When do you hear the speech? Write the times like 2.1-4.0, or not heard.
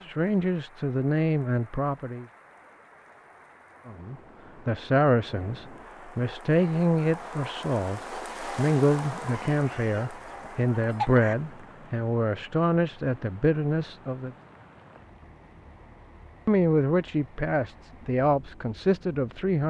0.0-2.2, 3.9-14.3, 16.4-19.6.